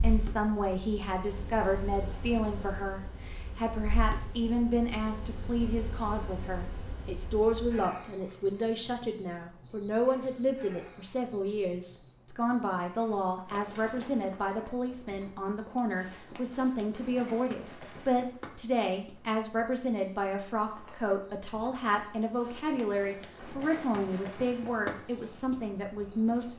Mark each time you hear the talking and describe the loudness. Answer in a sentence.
You can hear the talking from 0.0 to 26.5 s, at a steady volume.